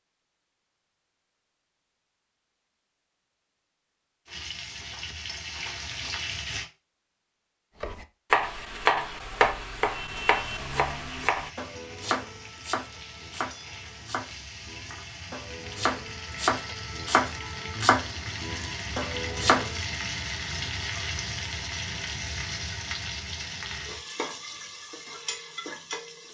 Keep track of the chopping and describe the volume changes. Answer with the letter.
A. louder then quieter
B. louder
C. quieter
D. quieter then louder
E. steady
D.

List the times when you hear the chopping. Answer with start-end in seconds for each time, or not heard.
7.8-19.8.